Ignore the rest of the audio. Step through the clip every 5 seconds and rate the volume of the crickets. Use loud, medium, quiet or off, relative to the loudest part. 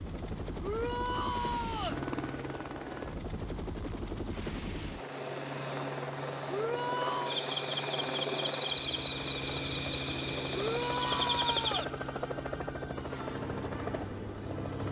off, loud, loud.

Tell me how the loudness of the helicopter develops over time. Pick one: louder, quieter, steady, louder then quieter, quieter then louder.
steady.